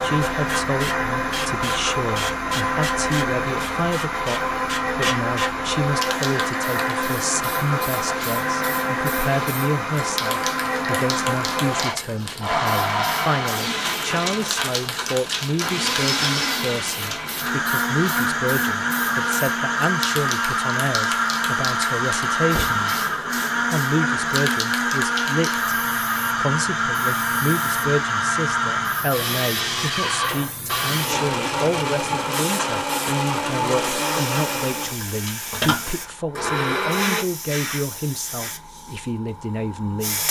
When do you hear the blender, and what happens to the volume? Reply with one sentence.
The blender can be heard from 0.0 to 37.2 s, at a steady volume.